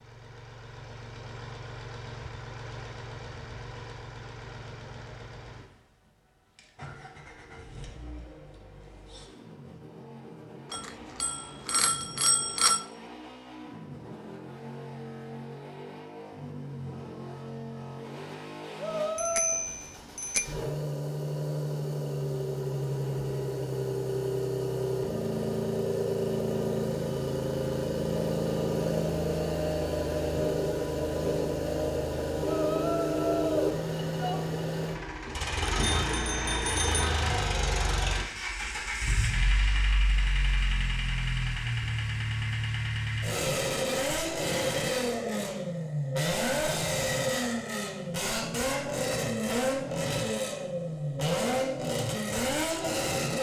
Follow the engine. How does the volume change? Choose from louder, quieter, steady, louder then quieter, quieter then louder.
louder.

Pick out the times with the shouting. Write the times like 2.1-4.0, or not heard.
18.8-19.6, 32.4-34.4.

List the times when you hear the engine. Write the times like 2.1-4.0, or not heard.
0.0-53.3.